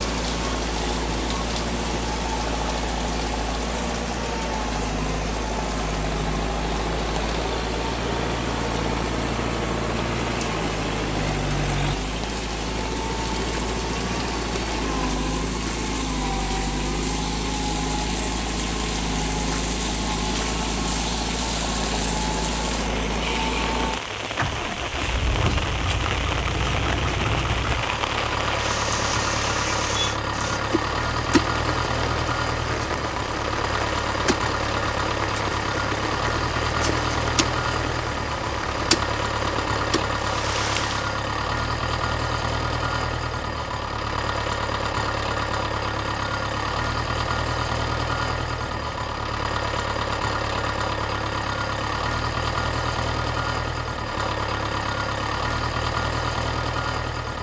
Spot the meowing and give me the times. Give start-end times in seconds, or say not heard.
not heard.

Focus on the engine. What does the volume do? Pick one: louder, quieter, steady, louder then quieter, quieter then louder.
steady.